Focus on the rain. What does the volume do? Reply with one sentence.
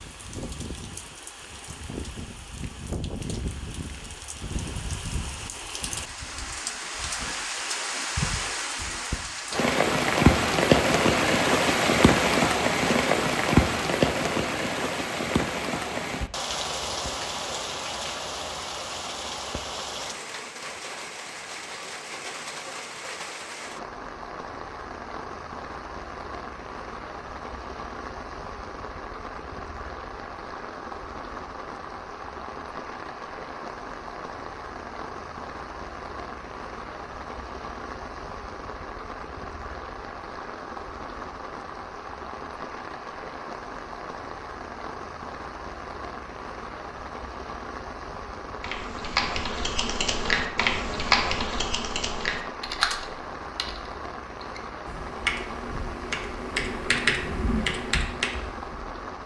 The volume of the rain goes down.